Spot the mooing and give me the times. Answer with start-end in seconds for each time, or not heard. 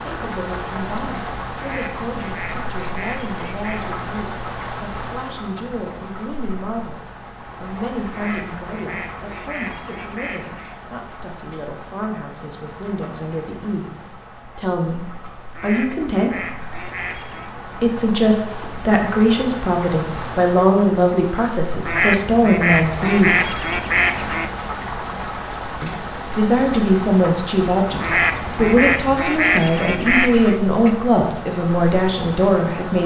not heard.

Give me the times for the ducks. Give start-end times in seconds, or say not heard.
1.6-3.9, 8.1-10.8, 15.6-17.5, 21.9-24.5, 28.0-30.6.